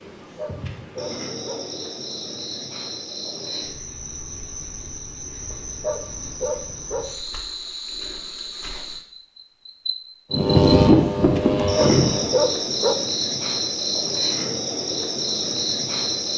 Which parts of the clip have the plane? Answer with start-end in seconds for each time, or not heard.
10.3-12.3.